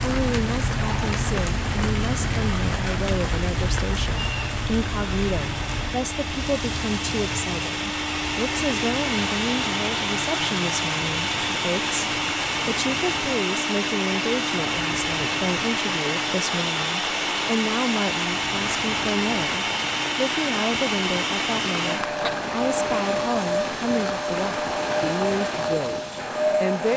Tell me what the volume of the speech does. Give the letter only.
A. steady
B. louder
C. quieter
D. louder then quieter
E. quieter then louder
A.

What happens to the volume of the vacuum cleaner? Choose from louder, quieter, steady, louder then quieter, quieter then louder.
louder.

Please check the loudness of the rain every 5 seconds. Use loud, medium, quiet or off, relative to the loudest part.
loud, medium, medium, medium, medium, medium.